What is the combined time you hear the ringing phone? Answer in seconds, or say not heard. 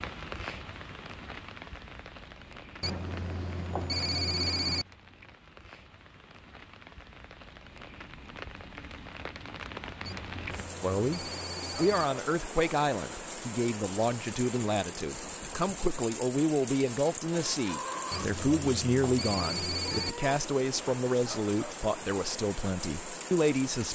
6 s.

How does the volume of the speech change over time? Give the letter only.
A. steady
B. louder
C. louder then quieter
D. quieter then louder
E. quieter
A.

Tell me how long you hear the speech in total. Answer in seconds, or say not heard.
13 s.